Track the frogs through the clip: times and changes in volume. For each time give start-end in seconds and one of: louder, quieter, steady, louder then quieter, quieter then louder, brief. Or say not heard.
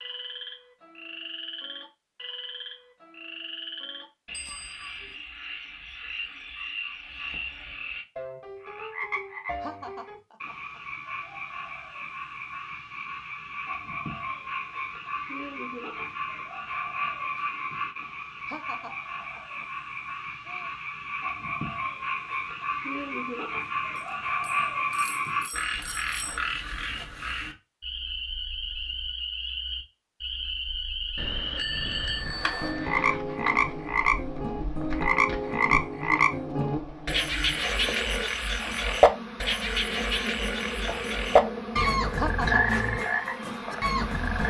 0.0-44.4 louder.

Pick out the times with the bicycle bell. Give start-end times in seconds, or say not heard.
4.3-5.2, 23.9-26.4, 31.1-33.2.